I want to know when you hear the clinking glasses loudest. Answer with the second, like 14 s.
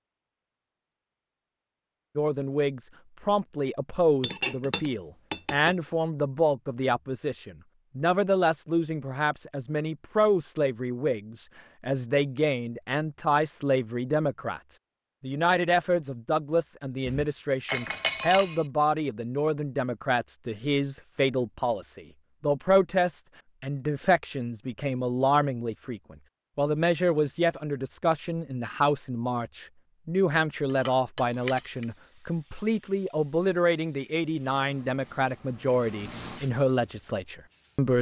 18 s.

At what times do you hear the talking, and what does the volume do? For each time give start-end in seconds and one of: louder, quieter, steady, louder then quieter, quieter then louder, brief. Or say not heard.
2.1-37.9 steady.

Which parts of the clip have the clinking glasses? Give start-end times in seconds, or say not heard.
4.2-5.8, 17.1-18.6, 30.6-31.9.